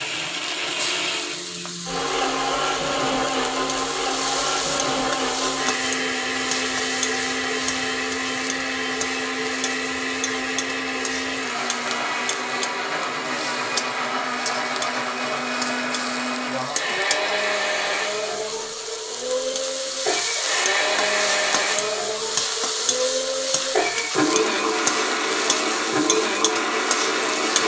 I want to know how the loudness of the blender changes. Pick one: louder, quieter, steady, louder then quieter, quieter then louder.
steady.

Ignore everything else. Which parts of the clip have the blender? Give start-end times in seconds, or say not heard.
0.0-27.6.